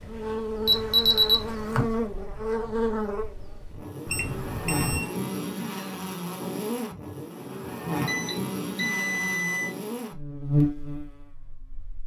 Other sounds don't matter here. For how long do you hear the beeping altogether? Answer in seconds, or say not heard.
4 s.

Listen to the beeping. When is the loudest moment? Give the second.
1 s.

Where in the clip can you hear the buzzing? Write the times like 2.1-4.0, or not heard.
0.0-12.0.